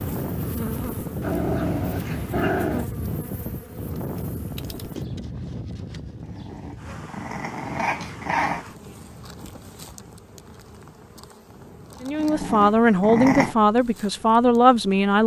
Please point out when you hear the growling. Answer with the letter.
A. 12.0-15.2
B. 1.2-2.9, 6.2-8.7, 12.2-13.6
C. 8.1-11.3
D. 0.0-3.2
B.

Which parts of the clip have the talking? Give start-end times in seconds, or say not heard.
12.0-15.2.